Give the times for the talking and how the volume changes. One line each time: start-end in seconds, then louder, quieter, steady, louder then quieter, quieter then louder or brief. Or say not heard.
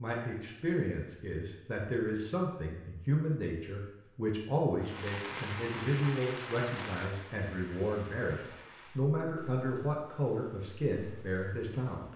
0.0-12.1 steady.